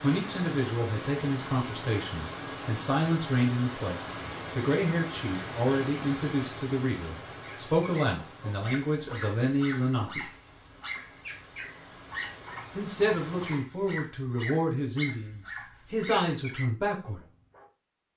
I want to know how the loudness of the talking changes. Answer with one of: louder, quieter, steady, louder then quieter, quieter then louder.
steady.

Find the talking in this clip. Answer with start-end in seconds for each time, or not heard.
0.0-10.2, 12.8-17.2.